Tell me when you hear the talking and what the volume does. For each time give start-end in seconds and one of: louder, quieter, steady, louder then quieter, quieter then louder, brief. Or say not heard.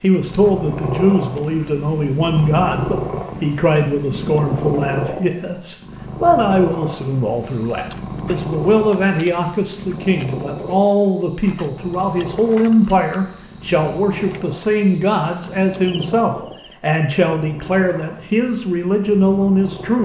0.0-20.0 steady.